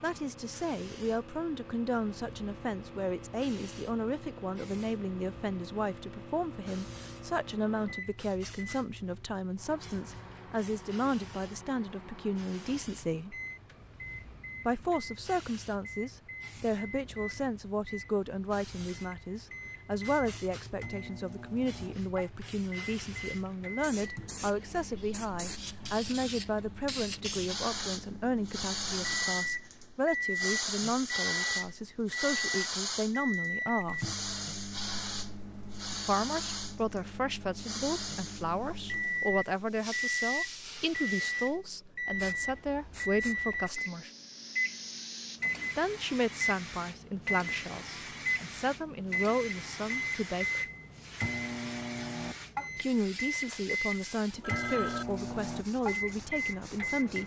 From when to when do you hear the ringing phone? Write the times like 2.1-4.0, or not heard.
54.3-55.0.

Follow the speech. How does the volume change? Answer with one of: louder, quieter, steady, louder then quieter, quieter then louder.
steady.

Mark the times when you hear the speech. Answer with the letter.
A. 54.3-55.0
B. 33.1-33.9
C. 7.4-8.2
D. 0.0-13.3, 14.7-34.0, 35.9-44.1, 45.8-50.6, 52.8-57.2
D.